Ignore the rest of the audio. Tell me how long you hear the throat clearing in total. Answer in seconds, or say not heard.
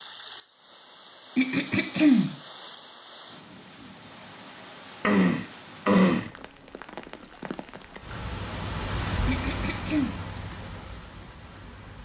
3 s.